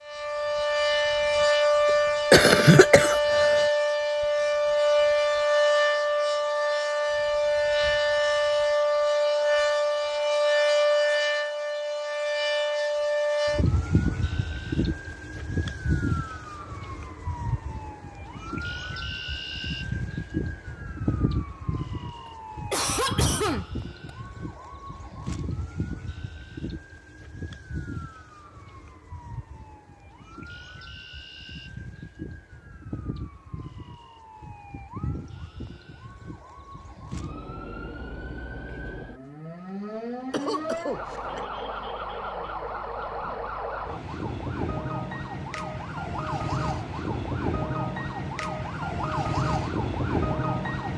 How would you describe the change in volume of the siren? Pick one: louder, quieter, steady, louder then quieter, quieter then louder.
quieter then louder.